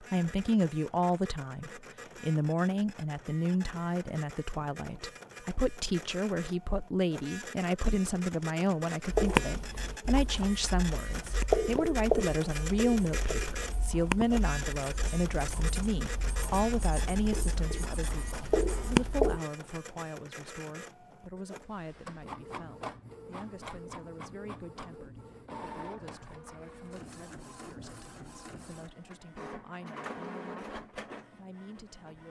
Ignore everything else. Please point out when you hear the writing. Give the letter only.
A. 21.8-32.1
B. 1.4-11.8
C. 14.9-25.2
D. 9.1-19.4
D.